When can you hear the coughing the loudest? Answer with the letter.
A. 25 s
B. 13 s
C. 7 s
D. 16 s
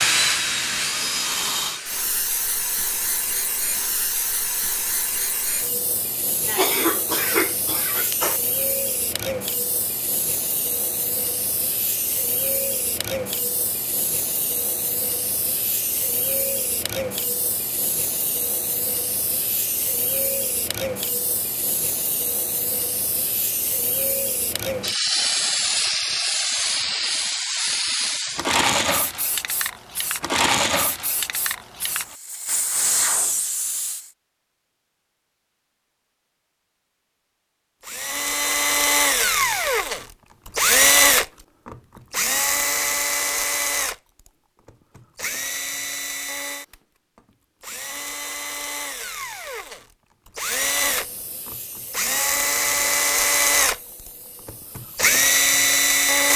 C.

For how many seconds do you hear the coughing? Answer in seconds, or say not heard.
2 s.